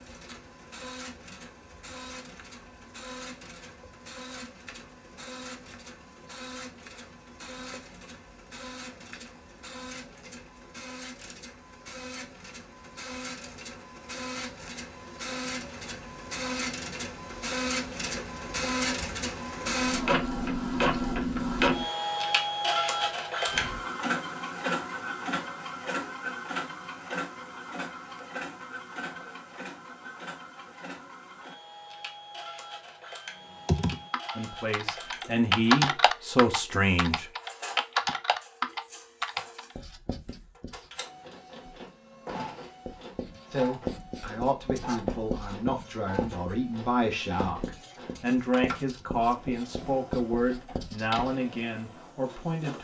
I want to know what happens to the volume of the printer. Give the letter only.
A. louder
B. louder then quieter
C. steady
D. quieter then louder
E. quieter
B.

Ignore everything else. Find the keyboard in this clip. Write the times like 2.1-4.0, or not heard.
33.6-39.8.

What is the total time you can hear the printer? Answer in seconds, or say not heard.
53 s.